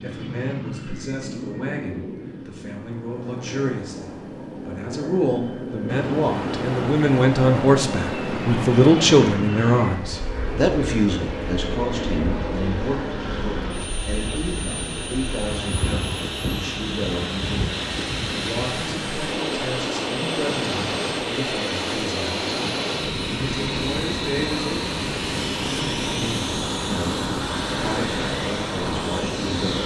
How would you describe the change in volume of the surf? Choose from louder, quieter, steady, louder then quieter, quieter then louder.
quieter then louder.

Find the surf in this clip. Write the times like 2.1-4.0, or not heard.
5.8-29.8.